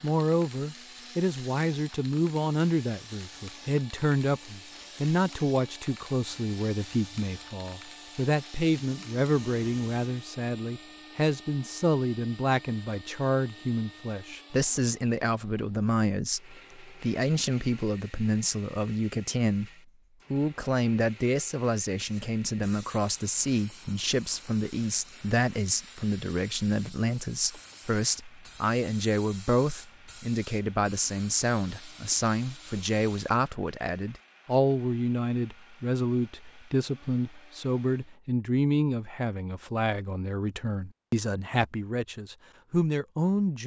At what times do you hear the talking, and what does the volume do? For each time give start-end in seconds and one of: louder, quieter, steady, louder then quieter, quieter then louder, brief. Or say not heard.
0.0-19.7 steady
20.3-43.6 steady.